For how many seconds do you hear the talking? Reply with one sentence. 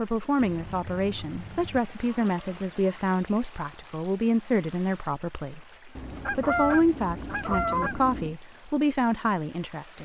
The talking can be heard for 10 seconds in total.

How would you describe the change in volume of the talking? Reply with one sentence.
The loudness of the talking stays about the same.